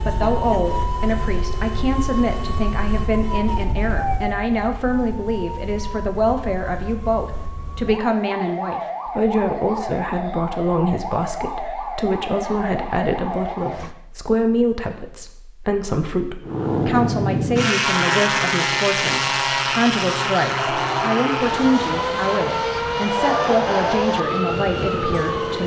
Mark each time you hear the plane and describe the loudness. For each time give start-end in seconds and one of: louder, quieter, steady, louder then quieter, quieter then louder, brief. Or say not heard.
16.4-25.6 quieter.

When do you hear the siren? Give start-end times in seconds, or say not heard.
0.0-13.9, 20.5-25.6.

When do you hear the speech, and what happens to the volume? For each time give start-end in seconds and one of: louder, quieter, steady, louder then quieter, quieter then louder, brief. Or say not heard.
0.1-25.6 steady.